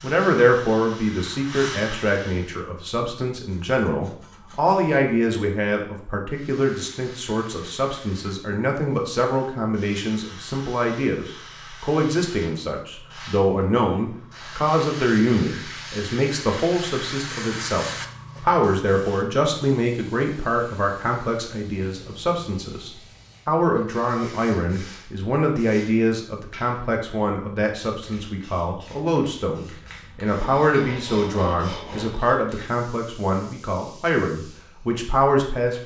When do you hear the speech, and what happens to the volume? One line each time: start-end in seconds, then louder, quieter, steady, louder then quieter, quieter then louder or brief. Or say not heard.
0.0-35.8 steady.